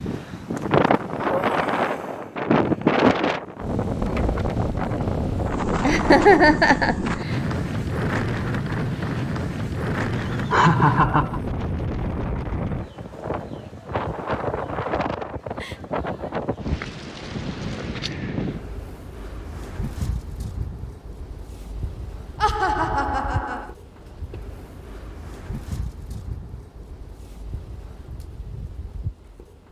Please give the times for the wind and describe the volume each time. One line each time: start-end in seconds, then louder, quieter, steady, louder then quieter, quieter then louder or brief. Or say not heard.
0.0-29.6 quieter.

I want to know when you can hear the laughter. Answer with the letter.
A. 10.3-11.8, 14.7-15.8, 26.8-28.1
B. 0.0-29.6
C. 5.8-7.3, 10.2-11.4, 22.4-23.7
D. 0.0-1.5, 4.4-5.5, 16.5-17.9
C.